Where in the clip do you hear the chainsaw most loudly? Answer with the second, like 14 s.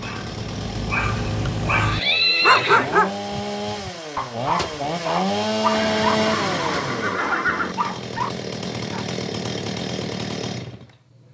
6 s.